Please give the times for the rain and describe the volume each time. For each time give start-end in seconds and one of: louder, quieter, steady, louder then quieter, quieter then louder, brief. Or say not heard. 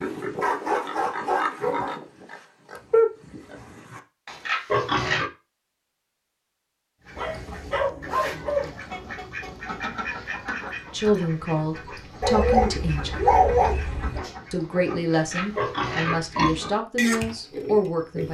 not heard.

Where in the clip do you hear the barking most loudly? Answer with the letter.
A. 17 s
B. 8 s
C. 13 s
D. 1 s
C.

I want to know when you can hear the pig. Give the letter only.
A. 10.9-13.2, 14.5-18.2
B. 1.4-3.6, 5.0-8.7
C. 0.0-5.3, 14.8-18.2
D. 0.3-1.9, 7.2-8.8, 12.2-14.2
C.